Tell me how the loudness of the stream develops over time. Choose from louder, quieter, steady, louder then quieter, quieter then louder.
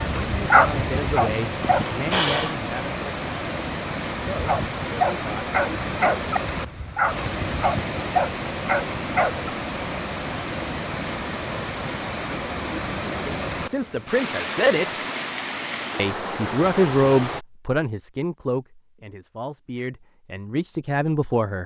steady.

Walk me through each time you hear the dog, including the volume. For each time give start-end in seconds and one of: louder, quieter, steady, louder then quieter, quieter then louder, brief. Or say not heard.
0.0-2.0 brief
4.2-9.5 steady.